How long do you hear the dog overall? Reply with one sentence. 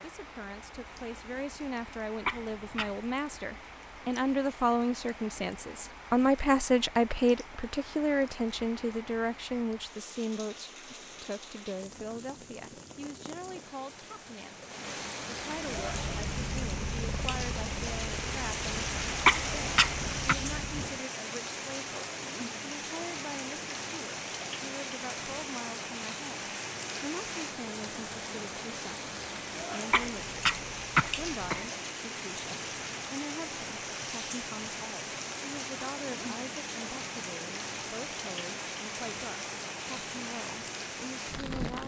The dog can't be heard in this clip.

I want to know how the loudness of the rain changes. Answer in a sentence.
The volume of the rain goes up.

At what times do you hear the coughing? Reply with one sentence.
You can hear the coughing from 2.2 to 3.0 s, from 19.2 to 20.4 s and from 29.9 to 31.6 s.